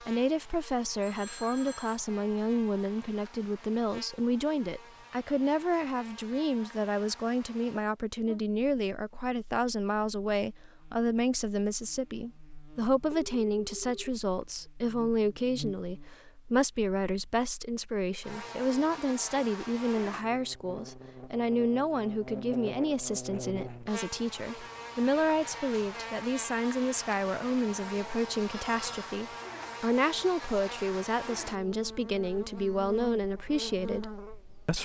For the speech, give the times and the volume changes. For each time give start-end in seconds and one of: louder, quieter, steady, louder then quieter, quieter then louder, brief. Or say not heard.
0.0-34.8 steady.